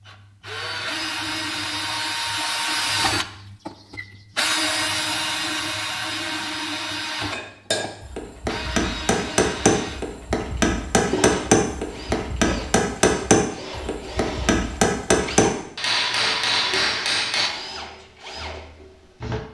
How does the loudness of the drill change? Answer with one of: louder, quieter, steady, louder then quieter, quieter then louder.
quieter.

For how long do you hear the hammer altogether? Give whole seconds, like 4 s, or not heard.
10 s.